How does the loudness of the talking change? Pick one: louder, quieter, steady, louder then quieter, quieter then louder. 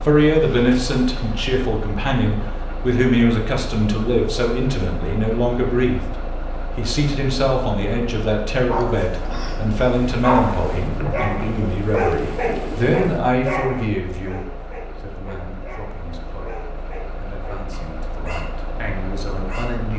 quieter.